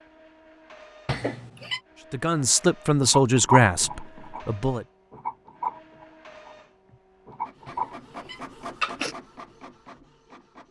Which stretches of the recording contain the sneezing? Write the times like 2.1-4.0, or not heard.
1.1-1.8, 7.7-9.2.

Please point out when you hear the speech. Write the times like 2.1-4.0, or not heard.
2.1-4.8.